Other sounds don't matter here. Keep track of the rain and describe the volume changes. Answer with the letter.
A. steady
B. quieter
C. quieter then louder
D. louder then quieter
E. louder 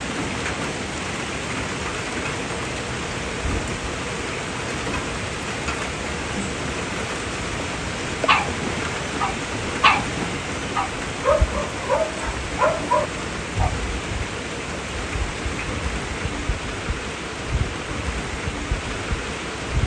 A.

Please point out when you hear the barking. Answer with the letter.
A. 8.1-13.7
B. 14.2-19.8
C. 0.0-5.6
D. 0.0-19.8
A.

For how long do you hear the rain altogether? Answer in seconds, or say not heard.
20 s.